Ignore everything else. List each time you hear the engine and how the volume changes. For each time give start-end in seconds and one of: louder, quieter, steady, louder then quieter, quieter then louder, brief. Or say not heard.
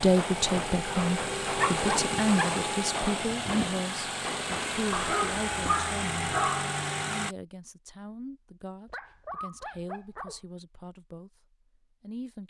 0.0-7.3 steady.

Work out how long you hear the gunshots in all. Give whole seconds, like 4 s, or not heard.
5 s.